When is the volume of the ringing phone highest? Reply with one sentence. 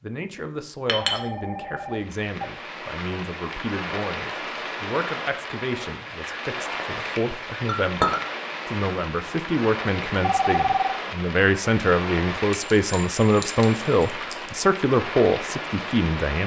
The loudest moment of the ringing phone is at 11 seconds.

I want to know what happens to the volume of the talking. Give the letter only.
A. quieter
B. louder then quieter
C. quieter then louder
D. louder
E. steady
D.